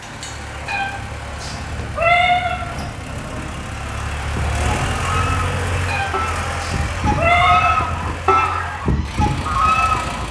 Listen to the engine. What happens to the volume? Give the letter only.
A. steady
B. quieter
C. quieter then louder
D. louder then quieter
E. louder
D.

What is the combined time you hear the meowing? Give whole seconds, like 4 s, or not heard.
4 s.